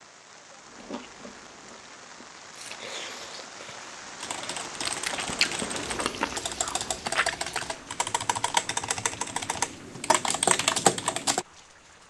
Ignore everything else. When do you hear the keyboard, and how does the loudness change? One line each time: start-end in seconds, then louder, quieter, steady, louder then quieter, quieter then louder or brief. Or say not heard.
4.2-11.4 louder.